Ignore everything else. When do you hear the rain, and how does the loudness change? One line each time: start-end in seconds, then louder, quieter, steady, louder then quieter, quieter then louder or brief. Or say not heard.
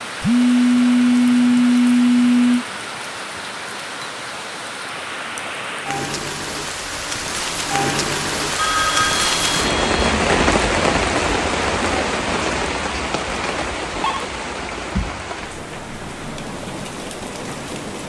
0.0-18.0 louder then quieter.